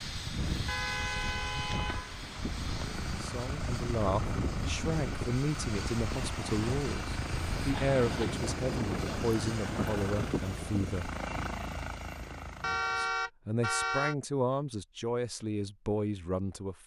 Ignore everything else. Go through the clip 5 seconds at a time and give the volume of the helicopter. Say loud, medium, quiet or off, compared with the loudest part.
loud, loud, loud, off.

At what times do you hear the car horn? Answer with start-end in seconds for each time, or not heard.
0.7-2.1, 7.7-8.3, 12.6-14.2.